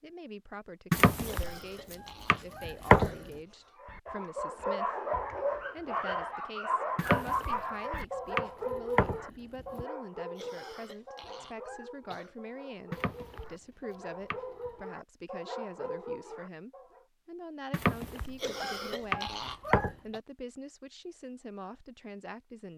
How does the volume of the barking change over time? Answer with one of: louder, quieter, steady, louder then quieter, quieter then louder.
quieter then louder.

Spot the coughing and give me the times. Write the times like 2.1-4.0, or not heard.
1.2-3.8, 10.3-12.4, 18.4-20.2.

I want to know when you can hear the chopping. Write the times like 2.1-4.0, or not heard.
0.9-3.1, 7.0-7.6, 8.3-9.8, 12.9-14.8, 17.7-18.4, 19.1-19.9.